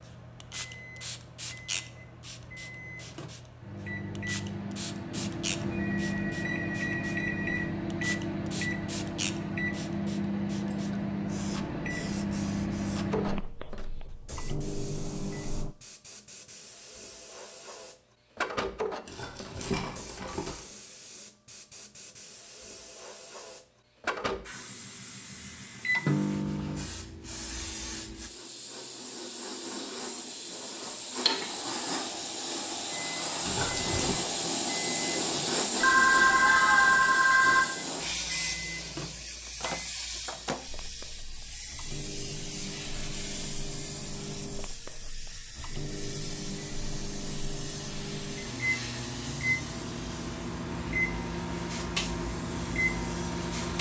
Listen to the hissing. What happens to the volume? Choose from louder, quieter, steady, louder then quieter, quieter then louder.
louder then quieter.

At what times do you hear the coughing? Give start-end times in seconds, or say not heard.
not heard.